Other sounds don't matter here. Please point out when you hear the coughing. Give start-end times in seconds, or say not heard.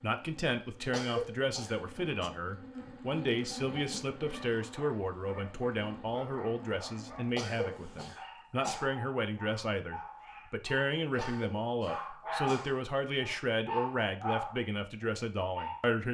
0.8-2.3, 7.2-8.8, 11.1-12.8.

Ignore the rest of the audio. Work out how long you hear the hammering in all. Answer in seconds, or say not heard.
not heard.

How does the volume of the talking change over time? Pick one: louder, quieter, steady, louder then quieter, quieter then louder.
steady.